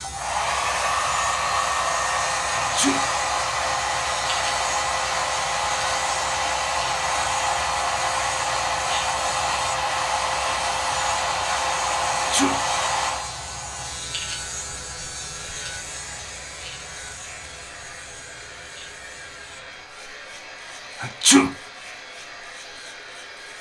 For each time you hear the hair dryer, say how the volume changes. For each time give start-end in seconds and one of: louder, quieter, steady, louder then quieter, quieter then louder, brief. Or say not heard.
0.0-23.5 quieter.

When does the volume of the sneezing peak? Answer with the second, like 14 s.
21 s.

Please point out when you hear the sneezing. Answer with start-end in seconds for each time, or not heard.
2.5-3.0, 12.1-12.6, 21.0-21.5.